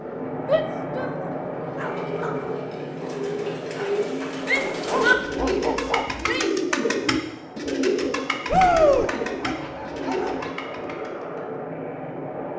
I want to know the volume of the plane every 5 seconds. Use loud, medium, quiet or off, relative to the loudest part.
loud, medium, loud.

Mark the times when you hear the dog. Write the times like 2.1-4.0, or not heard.
1.0-2.5, 4.8-6.3, 8.9-10.6.